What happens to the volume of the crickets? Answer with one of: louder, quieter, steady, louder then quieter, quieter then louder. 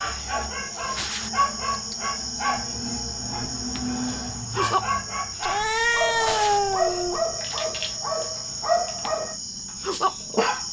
steady.